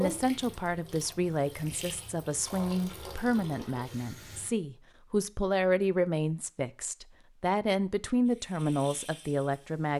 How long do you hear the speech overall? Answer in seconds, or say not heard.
10 s.